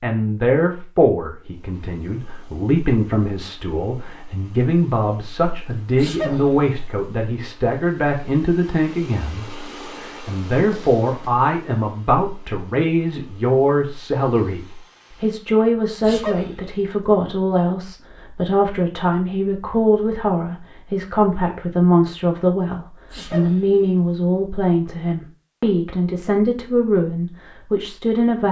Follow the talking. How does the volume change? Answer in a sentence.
The loudness of the talking stays about the same.